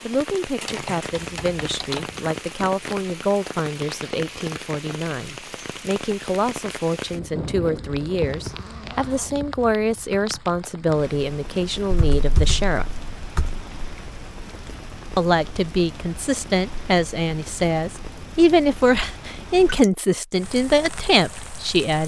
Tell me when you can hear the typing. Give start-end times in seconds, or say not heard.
0.7-2.2, 11.9-13.7.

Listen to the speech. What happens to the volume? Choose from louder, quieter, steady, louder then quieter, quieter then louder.
louder.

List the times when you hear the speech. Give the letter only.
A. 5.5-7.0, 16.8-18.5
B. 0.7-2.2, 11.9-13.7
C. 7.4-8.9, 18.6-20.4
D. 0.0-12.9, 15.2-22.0
D.